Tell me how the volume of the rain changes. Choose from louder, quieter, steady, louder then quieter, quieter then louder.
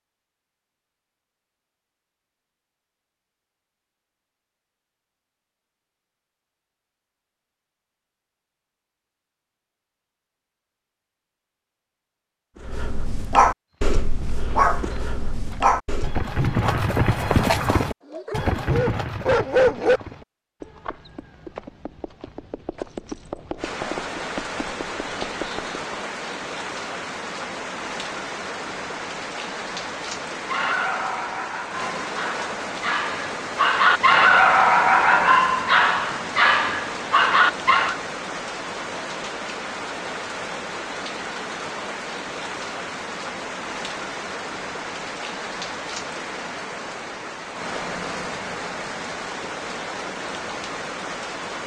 steady.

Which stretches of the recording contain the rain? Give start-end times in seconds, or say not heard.
23.6-51.6.